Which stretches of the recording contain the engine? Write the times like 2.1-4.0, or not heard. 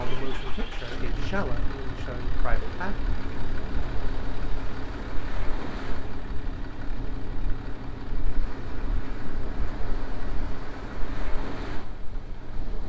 0.0-12.8.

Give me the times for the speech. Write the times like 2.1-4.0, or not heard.
0.0-3.0.